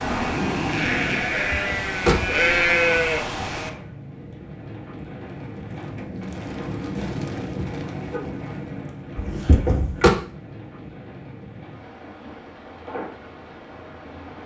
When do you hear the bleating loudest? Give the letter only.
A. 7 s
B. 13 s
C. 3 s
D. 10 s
C.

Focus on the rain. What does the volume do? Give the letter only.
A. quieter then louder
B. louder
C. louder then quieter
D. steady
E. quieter
C.